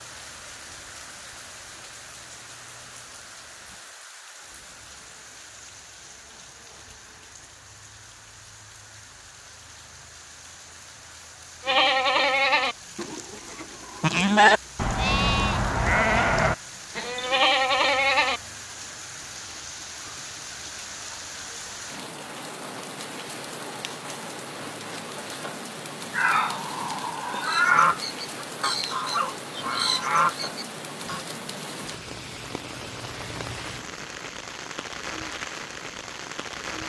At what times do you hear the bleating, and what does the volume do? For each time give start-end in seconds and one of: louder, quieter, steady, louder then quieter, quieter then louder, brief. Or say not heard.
11.7-18.4 steady.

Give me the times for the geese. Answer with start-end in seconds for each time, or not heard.
27.4-31.2.